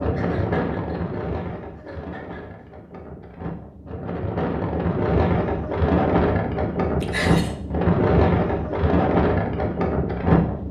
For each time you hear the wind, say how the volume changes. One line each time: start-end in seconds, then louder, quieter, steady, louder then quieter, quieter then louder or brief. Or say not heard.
0.0-10.6 quieter then louder.